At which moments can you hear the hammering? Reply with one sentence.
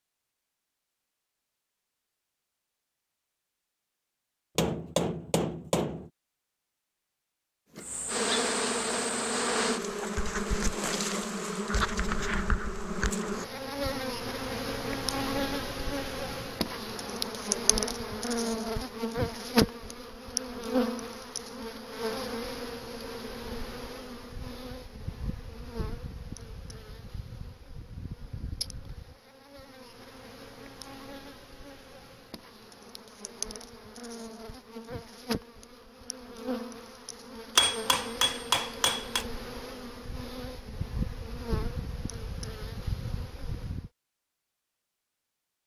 The hammering can be heard from 4.5 to 6.1 s and from 37.5 to 39.2 s.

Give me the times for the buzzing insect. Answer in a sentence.
The buzzing insect can be heard from 7.8 to 43.9 s.